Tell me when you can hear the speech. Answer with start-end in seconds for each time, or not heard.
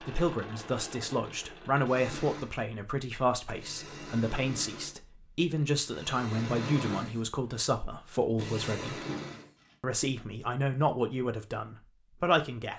0.0-9.1, 9.8-12.7.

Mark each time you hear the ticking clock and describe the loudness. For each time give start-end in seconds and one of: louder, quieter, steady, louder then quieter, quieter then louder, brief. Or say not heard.
not heard.